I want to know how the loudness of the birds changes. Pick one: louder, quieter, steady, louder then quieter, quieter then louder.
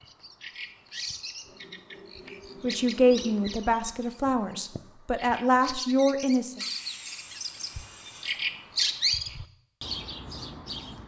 louder.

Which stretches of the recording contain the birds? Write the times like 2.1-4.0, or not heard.
0.0-11.0.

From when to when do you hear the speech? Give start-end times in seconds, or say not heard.
2.6-6.6.